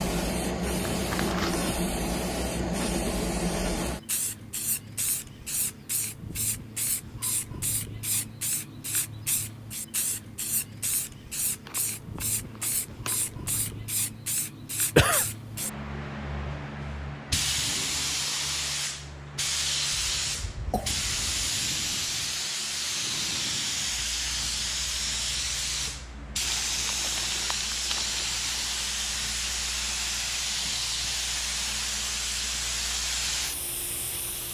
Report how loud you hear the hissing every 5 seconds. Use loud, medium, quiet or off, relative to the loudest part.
loud, medium, medium, loud, loud, loud, loud.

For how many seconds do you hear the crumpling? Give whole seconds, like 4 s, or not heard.
5 s.